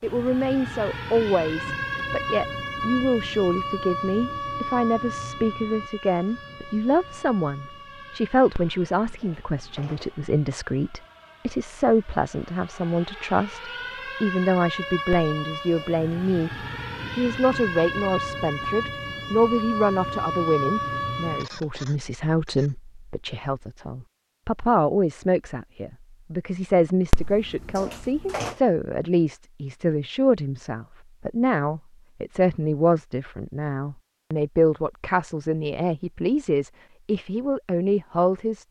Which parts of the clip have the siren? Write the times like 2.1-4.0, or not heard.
0.0-21.5.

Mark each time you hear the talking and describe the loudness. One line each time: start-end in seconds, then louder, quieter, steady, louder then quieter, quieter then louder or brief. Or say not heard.
0.0-16.5 steady
17.1-38.6 steady.